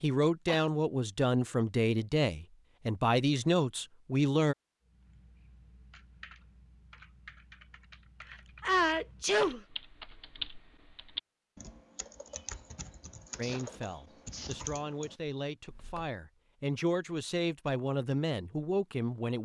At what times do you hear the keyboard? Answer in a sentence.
You can hear the keyboard from 4.8 to 16.1 s.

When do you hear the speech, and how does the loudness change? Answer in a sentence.
The speech can be heard from 0.0 to 4.5 s, at a steady volume; and from 13.3 to 19.4 s, getting louder.